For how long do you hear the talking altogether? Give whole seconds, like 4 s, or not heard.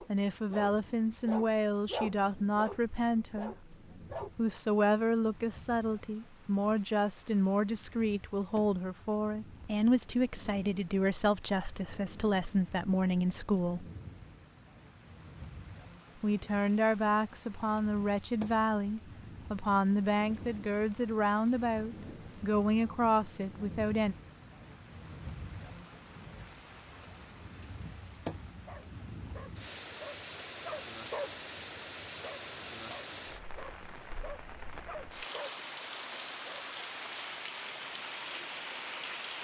21 s.